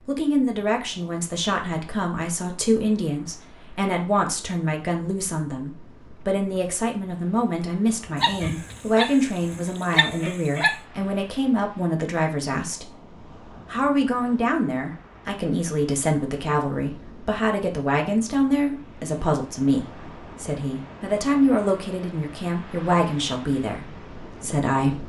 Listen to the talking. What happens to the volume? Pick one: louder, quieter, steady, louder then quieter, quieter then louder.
steady.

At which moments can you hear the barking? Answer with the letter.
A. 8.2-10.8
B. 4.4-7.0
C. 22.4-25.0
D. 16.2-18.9
A.